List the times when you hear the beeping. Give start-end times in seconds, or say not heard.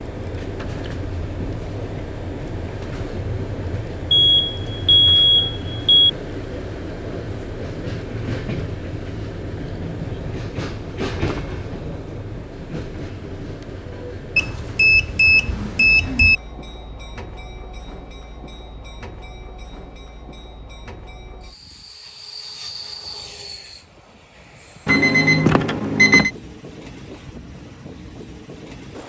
4.1-6.1, 14.3-16.4, 24.9-26.3.